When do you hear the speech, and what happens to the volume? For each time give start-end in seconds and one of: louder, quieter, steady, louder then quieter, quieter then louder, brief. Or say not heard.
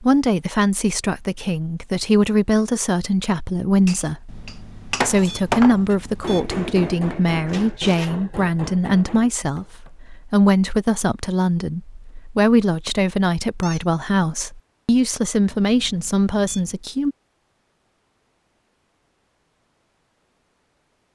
0.0-17.1 steady.